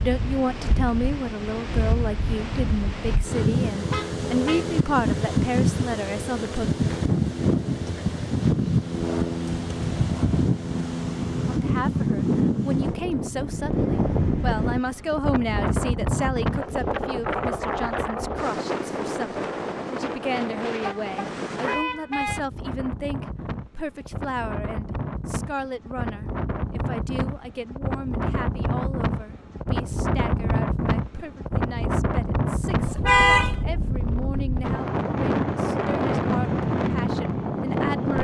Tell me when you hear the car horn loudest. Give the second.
33 s.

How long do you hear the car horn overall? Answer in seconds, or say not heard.
3 s.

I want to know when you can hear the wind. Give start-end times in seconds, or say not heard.
0.0-38.1.